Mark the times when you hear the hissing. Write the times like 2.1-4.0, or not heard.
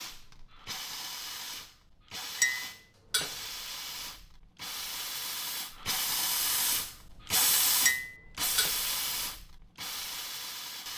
0.0-10.9.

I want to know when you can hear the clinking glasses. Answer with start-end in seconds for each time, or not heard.
2.4-3.4, 7.8-8.8.